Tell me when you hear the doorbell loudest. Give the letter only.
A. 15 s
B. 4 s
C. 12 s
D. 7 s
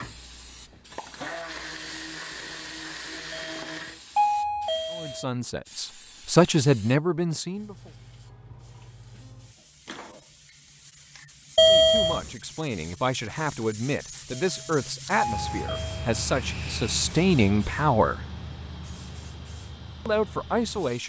C.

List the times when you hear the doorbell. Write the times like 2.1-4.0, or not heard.
3.3-5.2, 11.6-12.2, 14.3-16.1.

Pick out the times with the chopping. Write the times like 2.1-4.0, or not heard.
not heard.